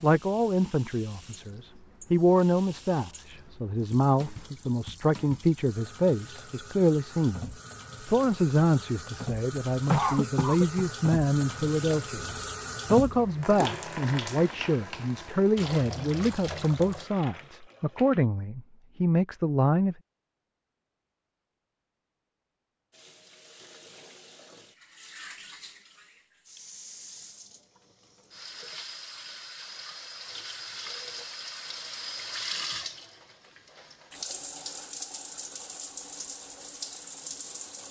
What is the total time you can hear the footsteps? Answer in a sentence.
The footsteps can't be heard in this clip.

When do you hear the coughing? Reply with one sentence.
The coughing can be heard from 9.8 to 10.8 s.